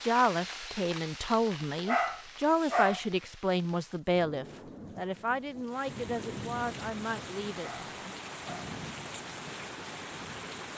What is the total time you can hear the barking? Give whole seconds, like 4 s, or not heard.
2 s.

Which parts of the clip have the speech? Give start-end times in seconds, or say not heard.
0.0-8.2.